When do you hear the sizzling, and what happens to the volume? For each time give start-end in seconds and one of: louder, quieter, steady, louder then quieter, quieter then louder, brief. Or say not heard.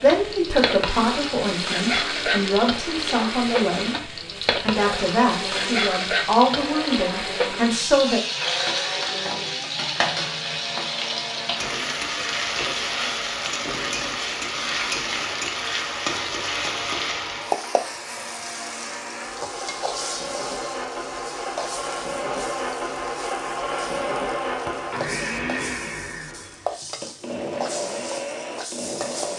0.0-29.3 quieter.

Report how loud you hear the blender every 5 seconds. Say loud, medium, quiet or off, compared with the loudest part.
medium, medium, medium, medium, loud, loud.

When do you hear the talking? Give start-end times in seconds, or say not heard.
0.0-8.2.